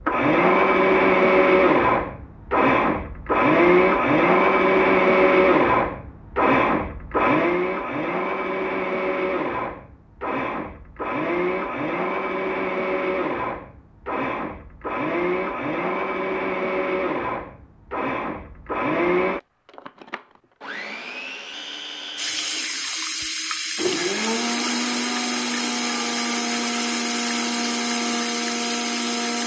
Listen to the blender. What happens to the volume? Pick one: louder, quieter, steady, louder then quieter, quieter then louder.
quieter.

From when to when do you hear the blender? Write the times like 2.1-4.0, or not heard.
0.0-29.4.